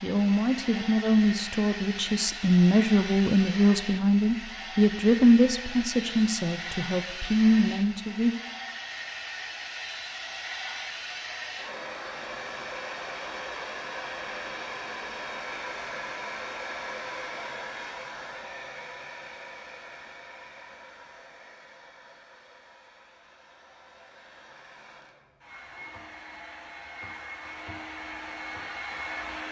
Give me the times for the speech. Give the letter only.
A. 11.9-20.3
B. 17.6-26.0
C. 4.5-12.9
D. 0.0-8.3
D.